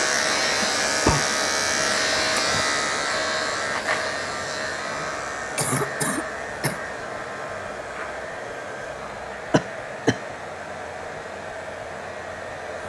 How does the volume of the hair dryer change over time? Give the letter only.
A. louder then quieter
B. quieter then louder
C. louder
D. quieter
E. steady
E.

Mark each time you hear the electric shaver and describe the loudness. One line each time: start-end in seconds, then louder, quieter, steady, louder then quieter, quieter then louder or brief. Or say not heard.
0.0-12.8 quieter.